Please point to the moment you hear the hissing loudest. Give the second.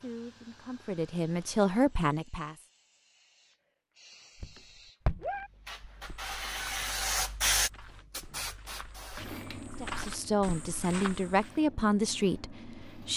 7 s.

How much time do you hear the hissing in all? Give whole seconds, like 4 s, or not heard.
13 s.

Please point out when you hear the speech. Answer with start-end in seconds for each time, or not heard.
0.0-2.5, 9.8-13.1.